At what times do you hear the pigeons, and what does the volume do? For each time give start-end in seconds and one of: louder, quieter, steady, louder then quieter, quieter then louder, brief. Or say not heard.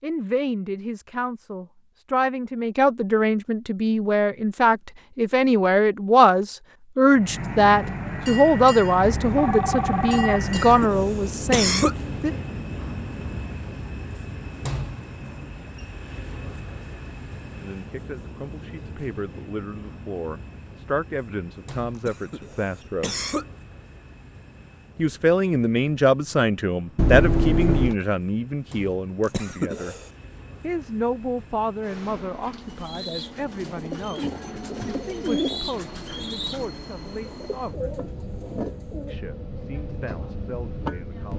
32.4-39.2 louder then quieter.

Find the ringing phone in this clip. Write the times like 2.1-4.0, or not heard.
9.0-10.9, 26.9-27.9.